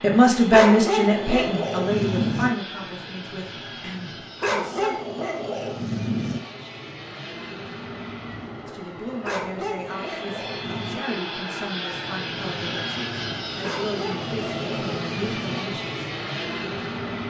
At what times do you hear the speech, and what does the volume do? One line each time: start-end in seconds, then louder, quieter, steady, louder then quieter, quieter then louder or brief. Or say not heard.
0.0-5.0 quieter
8.7-16.1 steady.